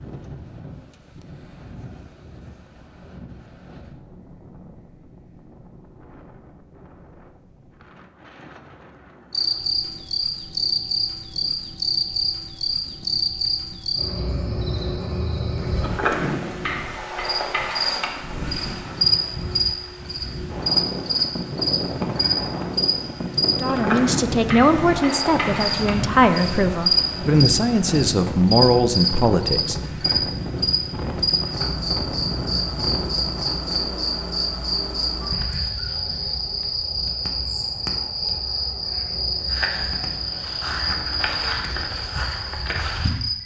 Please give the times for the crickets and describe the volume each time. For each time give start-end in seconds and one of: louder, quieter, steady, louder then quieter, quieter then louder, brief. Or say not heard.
9.3-43.4 steady.